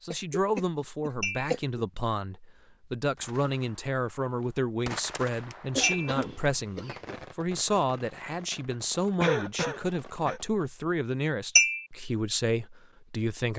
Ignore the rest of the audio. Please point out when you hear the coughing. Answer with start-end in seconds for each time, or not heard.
0.1-1.8, 5.8-7.2, 9.2-10.4.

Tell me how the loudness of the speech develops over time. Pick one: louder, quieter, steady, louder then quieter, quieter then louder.
steady.